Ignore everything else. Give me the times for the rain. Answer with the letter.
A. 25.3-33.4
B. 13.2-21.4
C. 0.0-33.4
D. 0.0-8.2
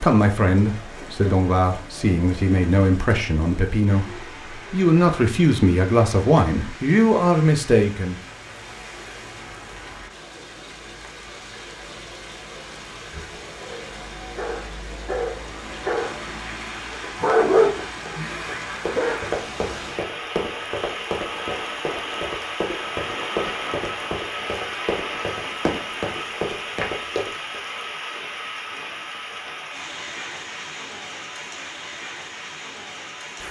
C.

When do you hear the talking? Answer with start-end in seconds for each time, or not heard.
0.0-8.2.